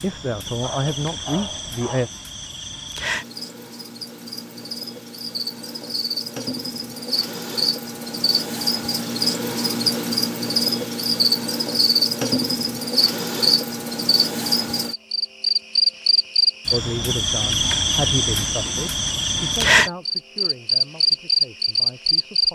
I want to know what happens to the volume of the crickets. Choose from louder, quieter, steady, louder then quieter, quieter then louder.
louder.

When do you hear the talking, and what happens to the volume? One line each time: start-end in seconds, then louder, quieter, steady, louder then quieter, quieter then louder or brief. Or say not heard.
0.0-2.1 brief
16.7-22.4 quieter.